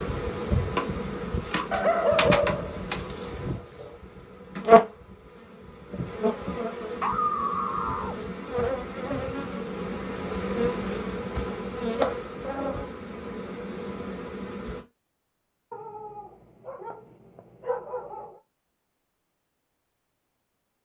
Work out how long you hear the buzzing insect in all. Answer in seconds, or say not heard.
15 s.